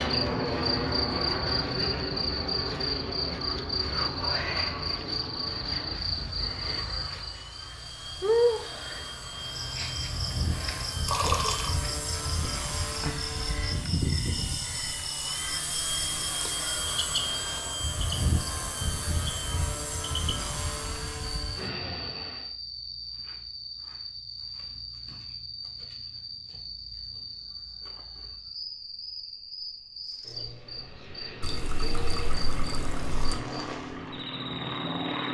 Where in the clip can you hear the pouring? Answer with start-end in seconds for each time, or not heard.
11.1-11.7, 31.4-33.4.